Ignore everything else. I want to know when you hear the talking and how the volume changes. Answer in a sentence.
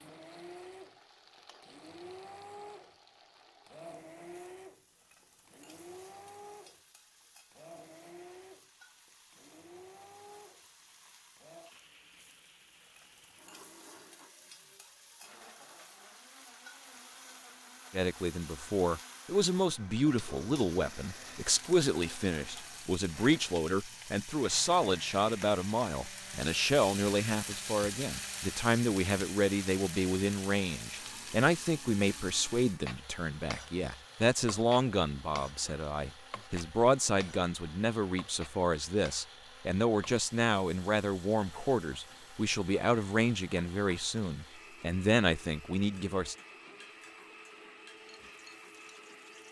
You can hear the talking from 17.9 to 46.4 s, at a steady volume.